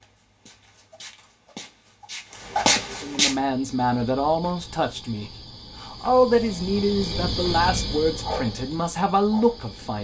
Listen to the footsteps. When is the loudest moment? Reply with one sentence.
The volume of the footsteps peaks at 3 seconds.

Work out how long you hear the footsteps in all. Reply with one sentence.
You can hear the footsteps for 3 seconds altogether.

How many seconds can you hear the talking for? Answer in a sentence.
The talking can be heard for 7 seconds in total.